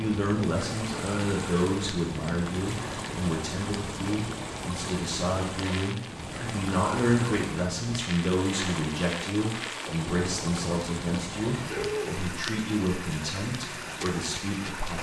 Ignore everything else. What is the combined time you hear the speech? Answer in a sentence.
You can hear the speech for 15 seconds altogether.